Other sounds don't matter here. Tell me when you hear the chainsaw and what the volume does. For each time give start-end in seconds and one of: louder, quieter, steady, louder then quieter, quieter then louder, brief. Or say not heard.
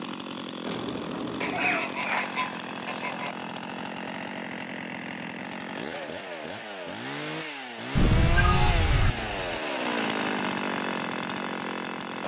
0.0-12.2 louder.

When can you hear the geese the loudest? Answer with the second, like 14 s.
8 s.